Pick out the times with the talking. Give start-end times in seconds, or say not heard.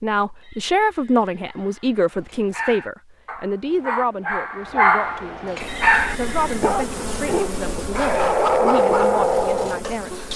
0.0-10.3.